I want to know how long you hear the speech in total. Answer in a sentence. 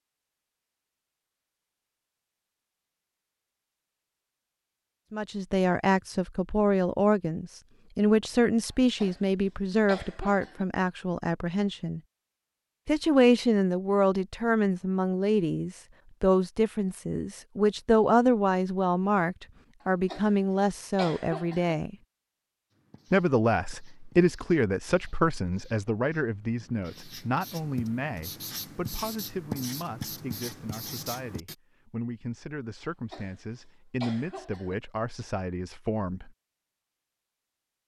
You can hear the speech for 29 seconds altogether.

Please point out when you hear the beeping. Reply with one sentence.
The beeping can't be heard in this clip.